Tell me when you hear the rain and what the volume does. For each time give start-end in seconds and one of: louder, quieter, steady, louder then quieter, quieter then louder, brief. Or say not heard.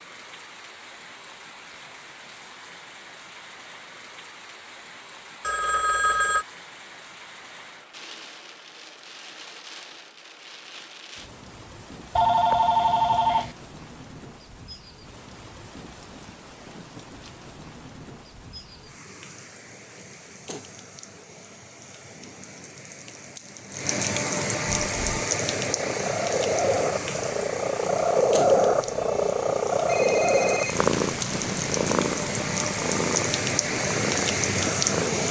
0.0-35.2 louder.